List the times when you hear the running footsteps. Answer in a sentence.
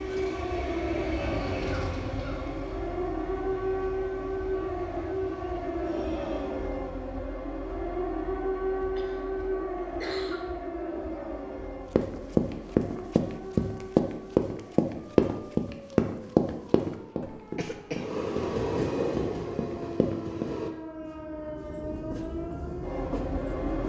You can hear the running footsteps from 11.9 to 20.5 s.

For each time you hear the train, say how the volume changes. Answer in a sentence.
You can hear the train from 0.0 to 6.7 s, getting quieter; and from 17.9 to 23.8 s, getting quieter.